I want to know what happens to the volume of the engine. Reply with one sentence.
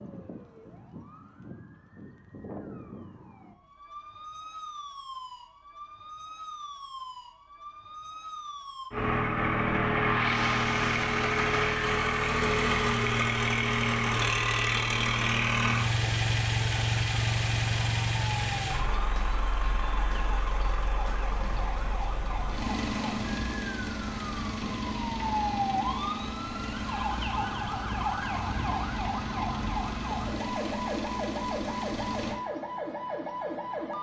The volume of the engine goes down.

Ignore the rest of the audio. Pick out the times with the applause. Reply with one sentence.
You can't hear the applause here.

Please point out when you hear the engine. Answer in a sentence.
The engine can be heard from 8.9 to 32.4 s.